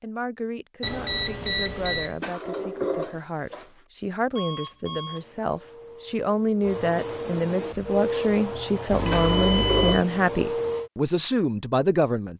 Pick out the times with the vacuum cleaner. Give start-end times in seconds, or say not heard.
5.0-10.9.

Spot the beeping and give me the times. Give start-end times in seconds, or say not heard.
0.8-2.1, 4.3-5.2, 8.9-10.1.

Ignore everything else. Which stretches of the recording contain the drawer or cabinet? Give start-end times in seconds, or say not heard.
2.2-3.7, 9.1-10.1.